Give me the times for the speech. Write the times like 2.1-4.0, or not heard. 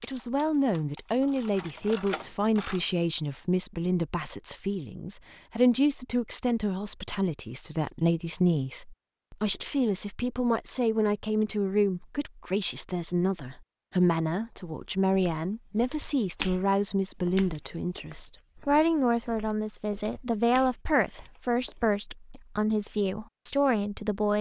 0.0-24.3.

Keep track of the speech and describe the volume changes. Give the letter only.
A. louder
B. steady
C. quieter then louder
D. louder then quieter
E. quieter
B.